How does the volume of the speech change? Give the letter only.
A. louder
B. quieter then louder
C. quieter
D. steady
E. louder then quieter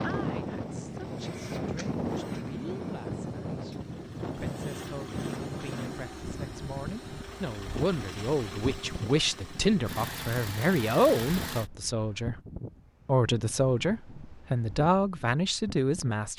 A.